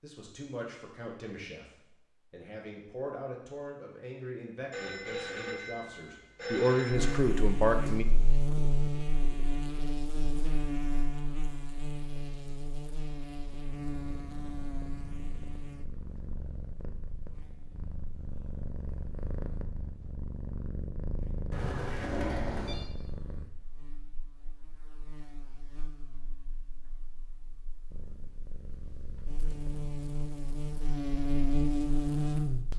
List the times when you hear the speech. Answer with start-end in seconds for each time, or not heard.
0.0-8.1.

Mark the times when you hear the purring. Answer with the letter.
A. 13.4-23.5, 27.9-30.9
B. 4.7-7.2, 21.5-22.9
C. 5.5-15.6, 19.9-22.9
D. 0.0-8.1
A.